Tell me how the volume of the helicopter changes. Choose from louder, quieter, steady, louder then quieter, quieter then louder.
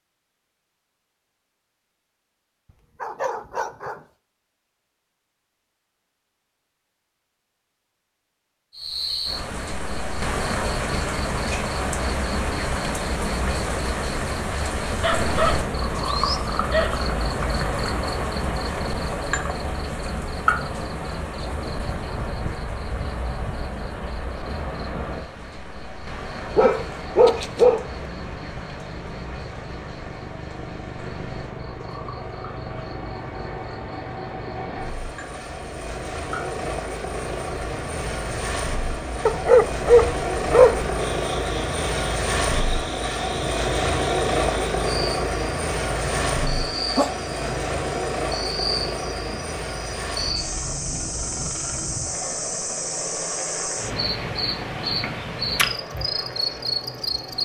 louder then quieter.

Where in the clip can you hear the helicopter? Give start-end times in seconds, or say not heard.
26.3-57.3.